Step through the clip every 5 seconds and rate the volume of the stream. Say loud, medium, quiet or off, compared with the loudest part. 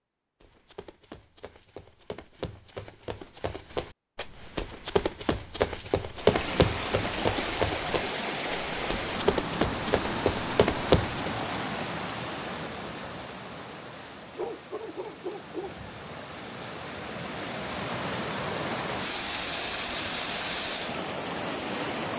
off, loud, loud, loud, loud.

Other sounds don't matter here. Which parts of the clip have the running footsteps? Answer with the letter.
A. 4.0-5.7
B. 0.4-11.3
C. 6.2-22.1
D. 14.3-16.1
B.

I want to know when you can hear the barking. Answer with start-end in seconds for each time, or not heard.
14.3-16.1.